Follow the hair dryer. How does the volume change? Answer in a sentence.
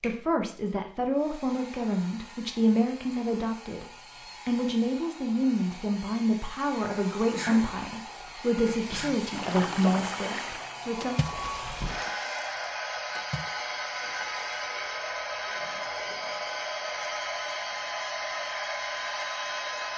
The volume of the hair dryer goes up.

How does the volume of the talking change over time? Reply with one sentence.
The loudness of the talking stays about the same.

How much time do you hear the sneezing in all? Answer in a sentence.
You can hear the sneezing for 2 seconds altogether.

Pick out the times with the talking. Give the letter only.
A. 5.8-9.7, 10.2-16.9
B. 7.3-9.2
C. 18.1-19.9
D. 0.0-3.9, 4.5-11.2
D.